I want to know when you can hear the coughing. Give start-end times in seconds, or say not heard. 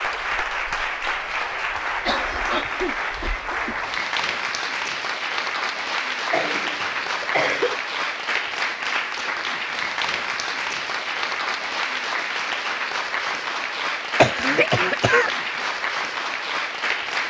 2.0-3.9, 6.3-7.8, 14.2-15.3.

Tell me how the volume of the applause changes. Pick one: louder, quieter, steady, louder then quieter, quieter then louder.
steady.